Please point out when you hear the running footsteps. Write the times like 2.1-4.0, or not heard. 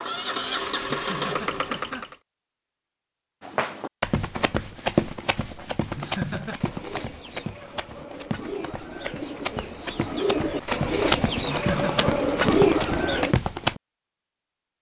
3.4-13.8.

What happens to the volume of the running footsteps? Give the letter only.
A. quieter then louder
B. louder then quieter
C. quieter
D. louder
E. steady
A.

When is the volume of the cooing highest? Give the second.
13 s.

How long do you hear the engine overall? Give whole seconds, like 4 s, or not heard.
2 s.